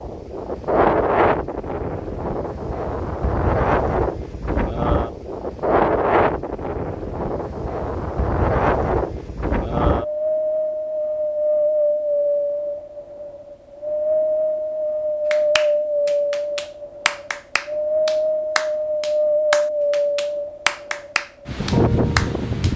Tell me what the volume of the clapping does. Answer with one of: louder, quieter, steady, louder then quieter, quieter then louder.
louder.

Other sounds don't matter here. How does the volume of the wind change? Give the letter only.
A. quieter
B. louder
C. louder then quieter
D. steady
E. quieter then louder
D.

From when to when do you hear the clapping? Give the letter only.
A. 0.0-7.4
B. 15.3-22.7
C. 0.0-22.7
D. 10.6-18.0
B.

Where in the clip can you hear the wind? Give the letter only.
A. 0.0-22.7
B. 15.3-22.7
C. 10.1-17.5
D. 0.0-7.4
A.